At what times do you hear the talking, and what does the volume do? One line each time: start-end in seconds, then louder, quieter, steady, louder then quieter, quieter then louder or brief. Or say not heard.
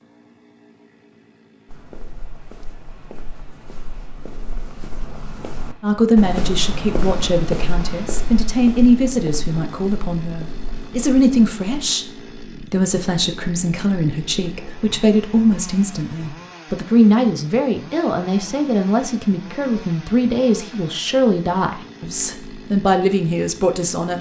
5.8-24.1 steady.